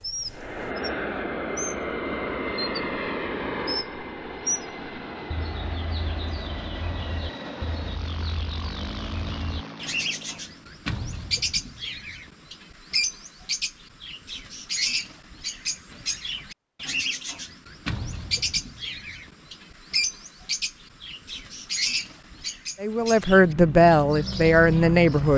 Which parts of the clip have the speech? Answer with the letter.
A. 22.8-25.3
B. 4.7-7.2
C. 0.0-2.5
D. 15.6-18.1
A.